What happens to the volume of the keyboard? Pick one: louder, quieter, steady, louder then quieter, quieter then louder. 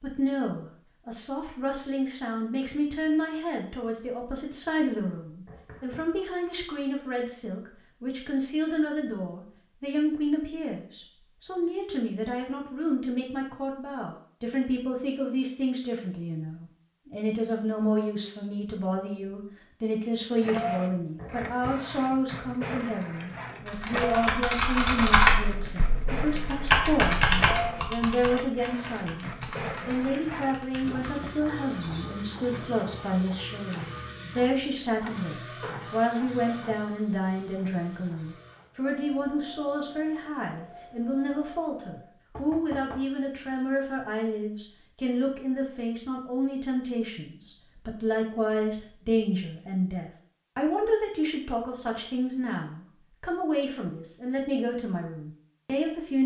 quieter.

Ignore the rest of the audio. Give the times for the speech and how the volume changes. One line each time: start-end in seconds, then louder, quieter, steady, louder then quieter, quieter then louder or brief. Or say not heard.
0.0-56.2 steady.